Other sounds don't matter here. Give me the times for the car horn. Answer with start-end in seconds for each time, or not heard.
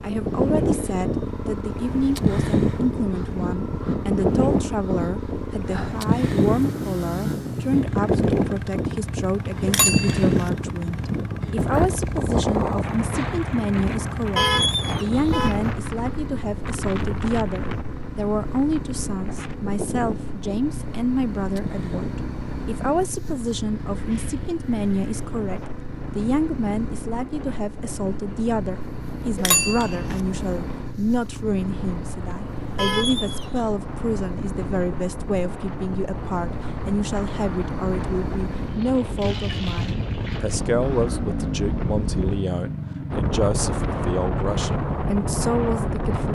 14.3-15.6, 32.8-33.6.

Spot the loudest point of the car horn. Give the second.
15 s.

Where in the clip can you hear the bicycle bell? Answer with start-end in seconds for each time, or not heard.
9.7-10.5, 29.4-30.2.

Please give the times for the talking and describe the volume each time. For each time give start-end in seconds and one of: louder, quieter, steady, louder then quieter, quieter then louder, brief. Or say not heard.
0.0-46.2 steady.